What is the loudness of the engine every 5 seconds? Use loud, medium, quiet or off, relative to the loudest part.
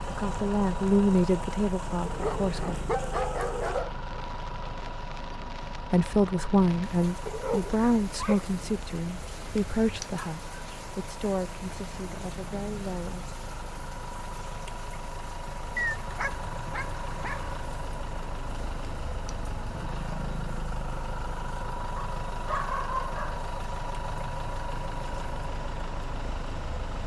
loud, medium, medium, loud, loud, loud.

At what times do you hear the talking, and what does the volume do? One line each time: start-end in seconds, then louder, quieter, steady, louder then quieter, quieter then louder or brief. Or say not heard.
0.1-2.8 brief
5.9-13.2 quieter.